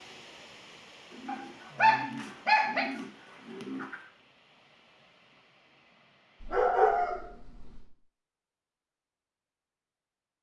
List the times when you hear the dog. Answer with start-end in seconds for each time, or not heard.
1.2-2.9, 6.4-7.8.